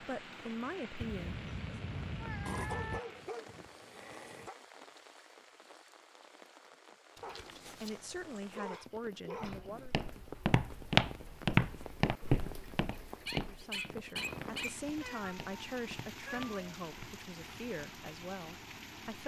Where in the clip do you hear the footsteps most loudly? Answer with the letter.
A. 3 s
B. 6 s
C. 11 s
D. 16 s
C.